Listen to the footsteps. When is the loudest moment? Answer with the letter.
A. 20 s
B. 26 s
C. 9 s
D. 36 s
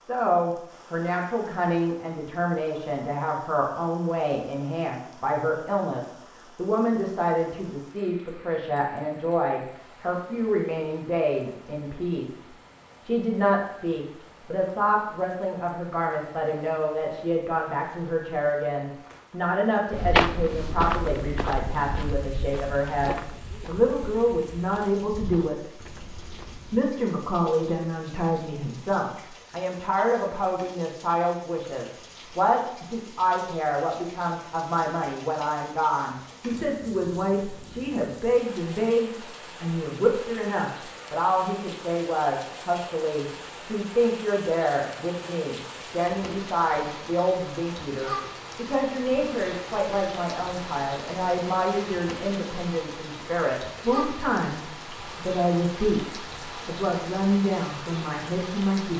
A.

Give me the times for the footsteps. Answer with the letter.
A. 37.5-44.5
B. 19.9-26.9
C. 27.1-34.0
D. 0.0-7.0
B.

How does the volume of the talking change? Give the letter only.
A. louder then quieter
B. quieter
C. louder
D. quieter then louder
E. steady
E.